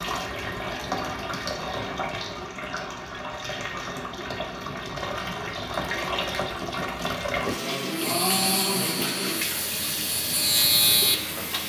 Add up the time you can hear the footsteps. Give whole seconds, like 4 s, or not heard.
not heard.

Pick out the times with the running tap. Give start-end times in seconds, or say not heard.
0.0-11.6.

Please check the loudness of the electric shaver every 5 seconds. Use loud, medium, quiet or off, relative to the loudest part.
off, medium, loud.